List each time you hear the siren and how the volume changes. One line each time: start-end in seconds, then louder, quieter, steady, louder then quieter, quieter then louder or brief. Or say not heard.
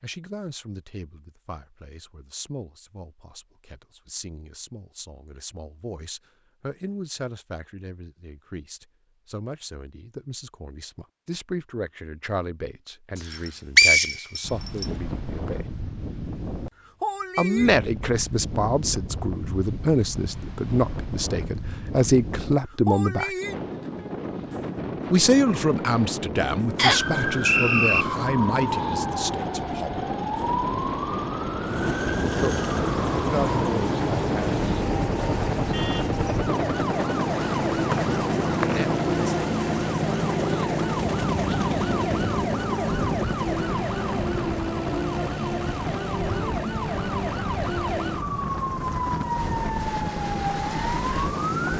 26.8-51.7 steady.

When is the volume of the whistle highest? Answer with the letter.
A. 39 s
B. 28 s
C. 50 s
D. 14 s
D.